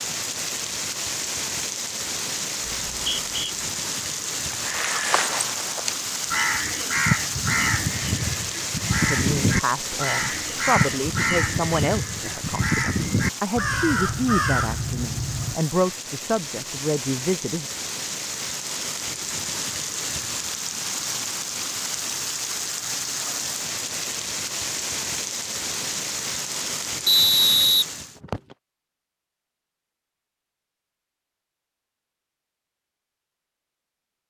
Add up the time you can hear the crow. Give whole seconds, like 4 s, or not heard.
11 s.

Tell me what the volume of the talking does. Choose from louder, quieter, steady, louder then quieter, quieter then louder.
steady.